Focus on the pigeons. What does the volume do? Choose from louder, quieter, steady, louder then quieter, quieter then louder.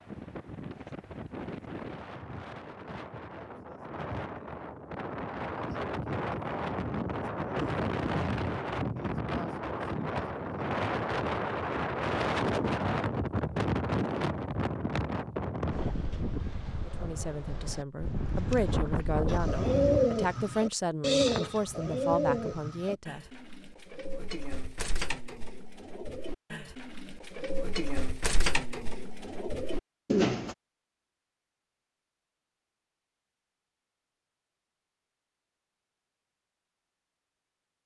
quieter then louder.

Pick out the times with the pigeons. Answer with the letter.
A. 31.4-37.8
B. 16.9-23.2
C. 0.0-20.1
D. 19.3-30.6
D.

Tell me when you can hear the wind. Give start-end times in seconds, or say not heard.
0.0-20.1.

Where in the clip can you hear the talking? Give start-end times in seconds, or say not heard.
16.9-23.2.